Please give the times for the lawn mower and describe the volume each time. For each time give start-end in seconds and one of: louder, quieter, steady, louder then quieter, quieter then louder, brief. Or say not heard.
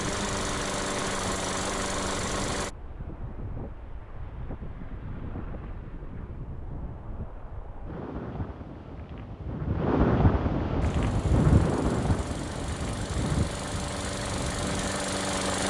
0.0-2.7 brief
10.8-15.6 louder.